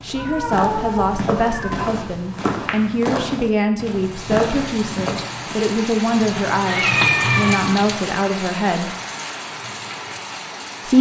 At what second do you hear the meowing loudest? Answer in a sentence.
The loudest moment of the meowing is at 7 seconds.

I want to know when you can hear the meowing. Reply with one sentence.
The meowing can be heard from 0.1 to 1.9 s and from 6.7 to 7.8 s.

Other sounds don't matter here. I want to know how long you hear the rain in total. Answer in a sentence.
The rain can be heard for 7 seconds in total.